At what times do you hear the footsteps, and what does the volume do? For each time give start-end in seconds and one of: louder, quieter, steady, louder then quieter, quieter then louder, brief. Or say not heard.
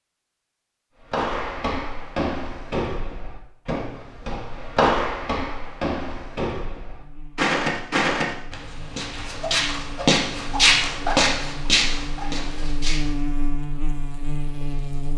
1.1-13.1 louder.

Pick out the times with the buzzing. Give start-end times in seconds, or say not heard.
7.0-15.1.